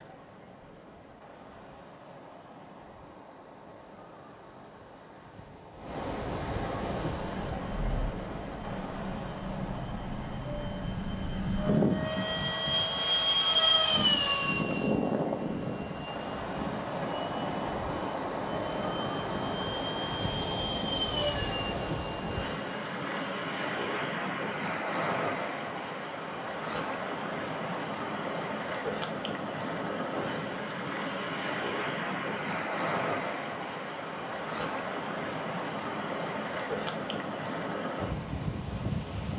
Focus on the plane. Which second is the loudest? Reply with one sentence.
The volume of the plane peaks at 14 seconds.